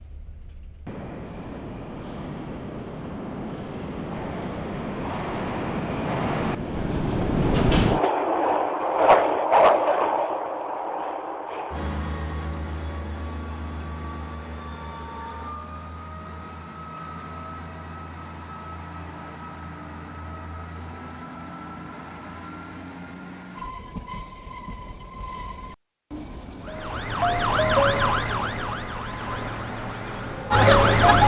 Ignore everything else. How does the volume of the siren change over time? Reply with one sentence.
The loudness of the siren goes down, then up.